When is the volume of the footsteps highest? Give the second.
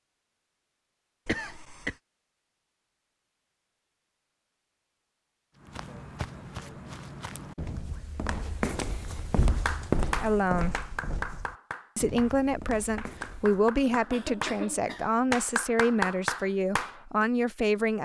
10 s.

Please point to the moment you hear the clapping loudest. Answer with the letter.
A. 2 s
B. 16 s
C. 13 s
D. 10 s
B.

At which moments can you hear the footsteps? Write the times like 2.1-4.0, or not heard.
5.5-13.7.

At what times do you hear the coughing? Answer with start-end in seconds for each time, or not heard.
1.2-1.9, 13.8-15.4.